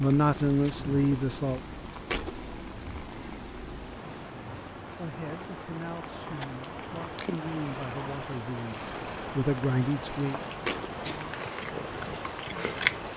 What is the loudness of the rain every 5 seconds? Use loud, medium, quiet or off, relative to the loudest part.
medium, loud, loud.